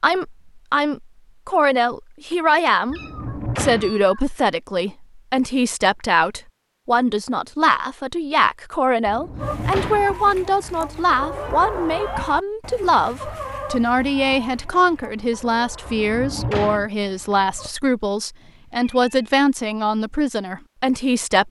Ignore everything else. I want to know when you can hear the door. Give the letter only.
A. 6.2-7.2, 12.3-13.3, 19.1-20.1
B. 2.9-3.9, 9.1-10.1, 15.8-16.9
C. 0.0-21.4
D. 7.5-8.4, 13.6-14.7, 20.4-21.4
B.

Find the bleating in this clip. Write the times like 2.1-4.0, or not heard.
not heard.